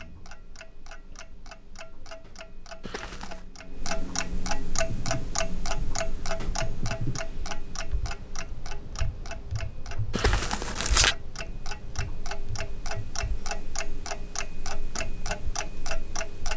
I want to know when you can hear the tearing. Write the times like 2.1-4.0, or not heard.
2.8-3.5, 10.1-11.2.